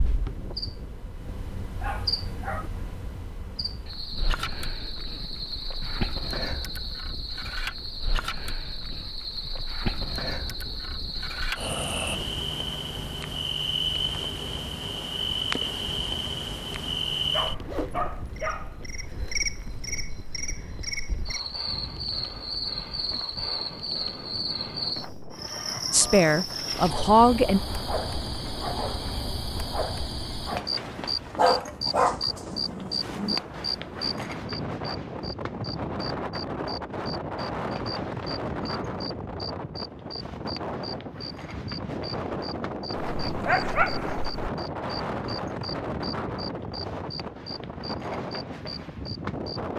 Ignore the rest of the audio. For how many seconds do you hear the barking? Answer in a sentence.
You can hear the barking for 6 seconds altogether.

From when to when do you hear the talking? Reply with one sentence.
You can hear the talking from 25.9 to 27.6 s.